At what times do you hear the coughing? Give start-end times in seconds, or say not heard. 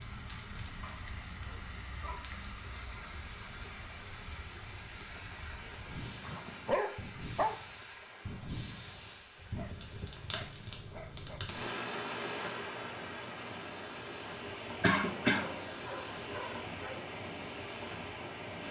14.8-15.4.